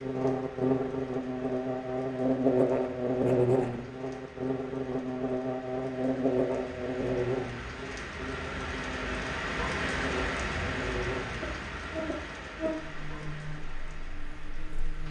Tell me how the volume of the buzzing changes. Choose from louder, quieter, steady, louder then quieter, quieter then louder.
quieter.